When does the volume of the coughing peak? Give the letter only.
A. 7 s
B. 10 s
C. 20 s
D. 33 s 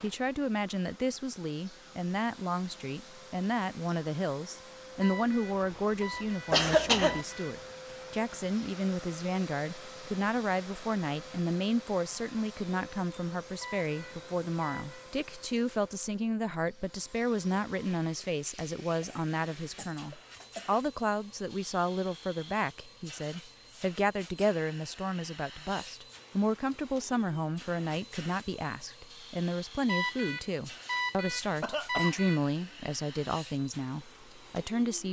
A.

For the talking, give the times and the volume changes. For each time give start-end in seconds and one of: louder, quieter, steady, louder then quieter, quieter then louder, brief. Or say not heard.
0.0-35.0 steady.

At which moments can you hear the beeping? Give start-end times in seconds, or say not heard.
5.0-7.5, 13.6-15.1, 29.9-32.4.